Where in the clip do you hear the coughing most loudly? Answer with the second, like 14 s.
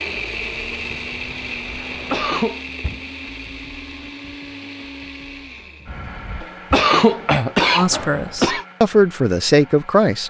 7 s.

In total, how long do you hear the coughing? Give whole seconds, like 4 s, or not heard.
4 s.